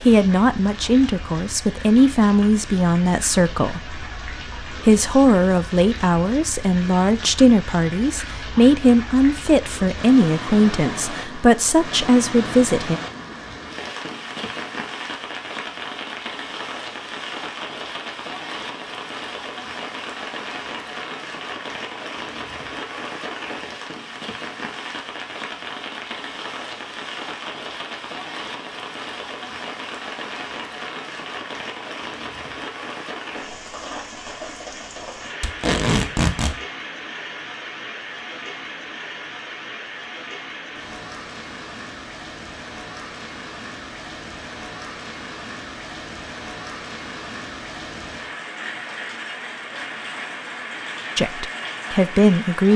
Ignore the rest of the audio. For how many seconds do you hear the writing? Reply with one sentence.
The writing can't be heard in this clip.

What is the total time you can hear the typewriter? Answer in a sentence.
You can't hear the typewriter here.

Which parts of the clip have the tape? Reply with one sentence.
You can hear the tape from 35.4 to 36.5 s.